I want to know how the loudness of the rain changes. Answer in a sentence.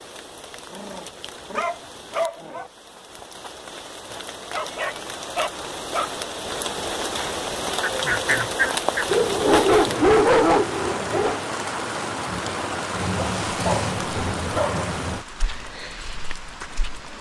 The loudness of the rain goes up.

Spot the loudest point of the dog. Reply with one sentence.
The loudest moment of the dog is at 10 seconds.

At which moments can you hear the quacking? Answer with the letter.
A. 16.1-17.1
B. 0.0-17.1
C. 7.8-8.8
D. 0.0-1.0
C.